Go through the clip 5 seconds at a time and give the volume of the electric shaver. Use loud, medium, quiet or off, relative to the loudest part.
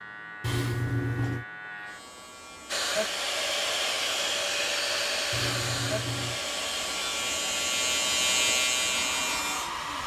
quiet, loud.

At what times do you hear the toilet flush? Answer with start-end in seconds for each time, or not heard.
0.4-1.4, 5.3-6.4.